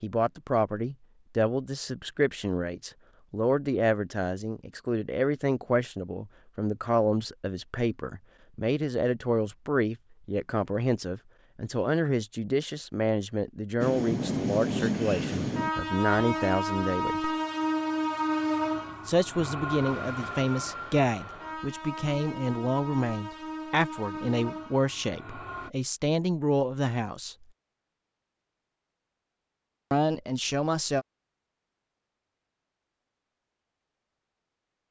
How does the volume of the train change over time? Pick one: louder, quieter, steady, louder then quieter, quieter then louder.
quieter.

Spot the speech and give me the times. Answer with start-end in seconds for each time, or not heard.
0.0-17.2, 19.1-27.4, 29.9-31.1.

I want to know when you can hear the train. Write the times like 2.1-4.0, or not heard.
13.8-25.7.